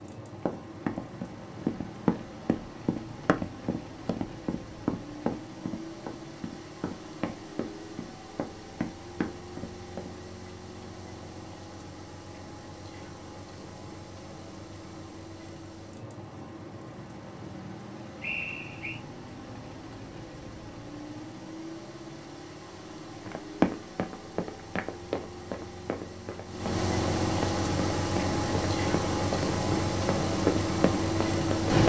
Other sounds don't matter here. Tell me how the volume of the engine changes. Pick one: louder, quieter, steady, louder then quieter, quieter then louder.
louder.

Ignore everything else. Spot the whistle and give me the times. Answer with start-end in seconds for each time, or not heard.
18.2-19.0.